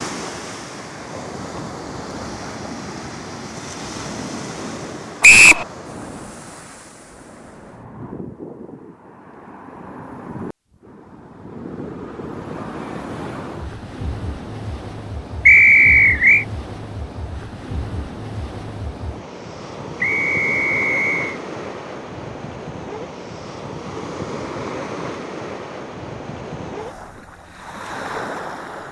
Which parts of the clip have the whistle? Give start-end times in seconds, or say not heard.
5.2-5.7, 15.4-16.4, 20.0-21.4.